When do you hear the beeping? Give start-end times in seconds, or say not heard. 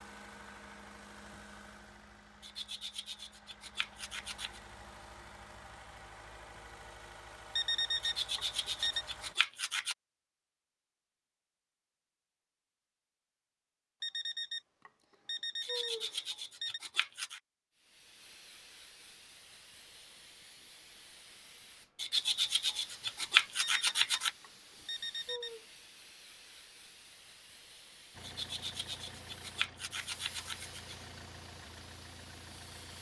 7.5-9.1, 14.0-16.8, 23.6-25.6.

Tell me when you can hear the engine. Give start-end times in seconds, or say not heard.
0.0-9.3, 28.1-32.9.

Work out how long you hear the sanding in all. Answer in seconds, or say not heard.
11 s.